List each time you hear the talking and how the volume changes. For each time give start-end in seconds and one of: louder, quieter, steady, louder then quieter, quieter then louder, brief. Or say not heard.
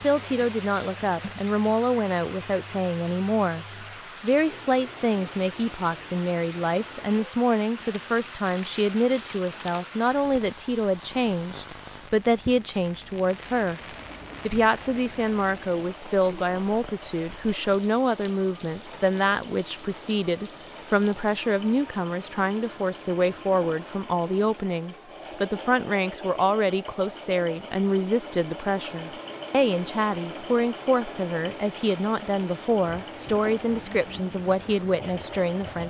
0.0-13.8 steady
14.4-35.8 steady.